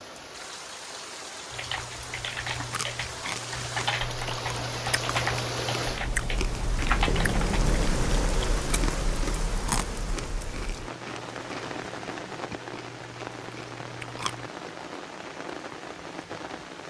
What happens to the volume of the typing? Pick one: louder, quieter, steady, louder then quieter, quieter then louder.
louder.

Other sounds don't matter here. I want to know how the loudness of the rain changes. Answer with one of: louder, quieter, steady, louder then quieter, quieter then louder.
louder then quieter.